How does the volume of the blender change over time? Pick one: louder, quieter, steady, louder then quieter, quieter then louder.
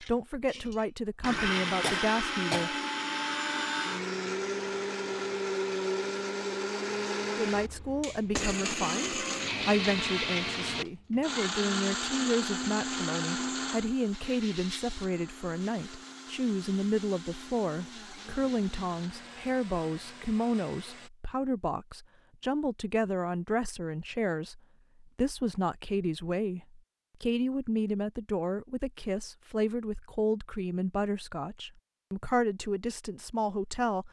quieter.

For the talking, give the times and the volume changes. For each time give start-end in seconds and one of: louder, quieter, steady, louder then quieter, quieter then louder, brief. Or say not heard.
0.0-2.8 brief
7.3-34.0 steady.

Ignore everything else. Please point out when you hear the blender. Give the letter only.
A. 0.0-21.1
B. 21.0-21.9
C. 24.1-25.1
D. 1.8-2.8
A.